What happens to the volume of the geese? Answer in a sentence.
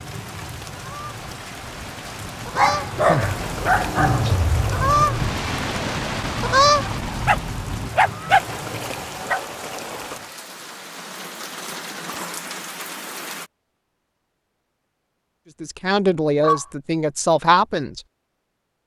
The loudness of the geese goes up.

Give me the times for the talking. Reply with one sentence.
You can hear the talking from 15.6 to 18.0 s.